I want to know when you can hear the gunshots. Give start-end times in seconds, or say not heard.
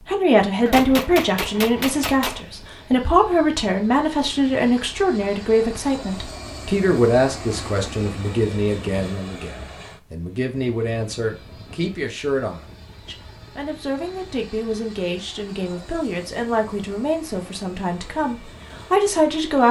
0.7-2.4.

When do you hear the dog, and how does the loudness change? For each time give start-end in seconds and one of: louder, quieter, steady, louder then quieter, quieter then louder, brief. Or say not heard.
not heard.